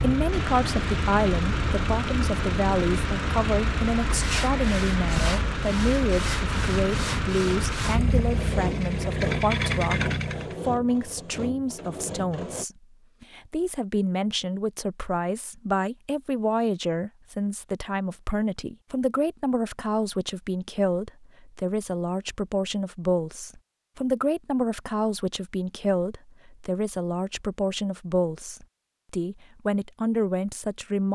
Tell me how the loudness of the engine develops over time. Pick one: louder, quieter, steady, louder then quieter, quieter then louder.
steady.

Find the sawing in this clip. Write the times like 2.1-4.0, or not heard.
4.0-12.7.